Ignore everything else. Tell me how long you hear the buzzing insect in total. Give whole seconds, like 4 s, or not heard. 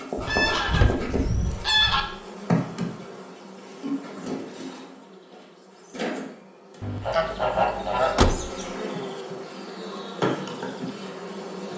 12 s.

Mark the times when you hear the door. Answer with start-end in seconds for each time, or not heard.
0.2-1.1, 8.2-8.6.